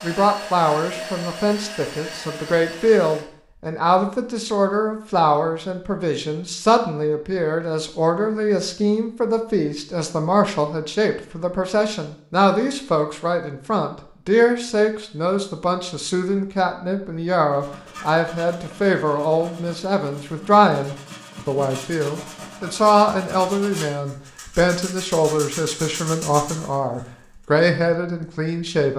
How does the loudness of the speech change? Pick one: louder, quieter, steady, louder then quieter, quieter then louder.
steady.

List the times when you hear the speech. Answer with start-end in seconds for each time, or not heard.
0.0-28.9.